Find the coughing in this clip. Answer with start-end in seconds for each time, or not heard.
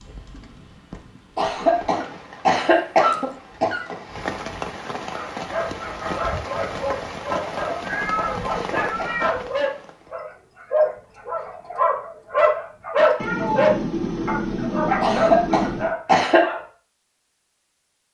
1.4-4.0, 7.5-9.3, 15.0-16.4.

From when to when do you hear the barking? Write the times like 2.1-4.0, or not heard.
5.2-16.6.